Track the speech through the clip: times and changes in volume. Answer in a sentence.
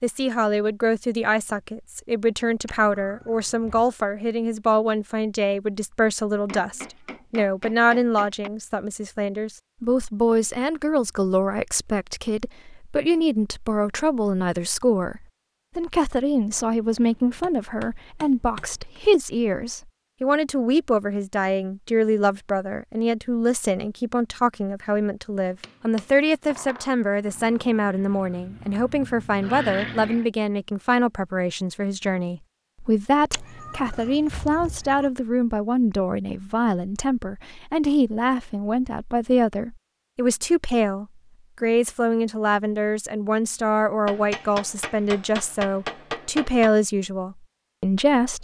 You can hear the speech from 0.0 to 48.3 s, at a steady volume.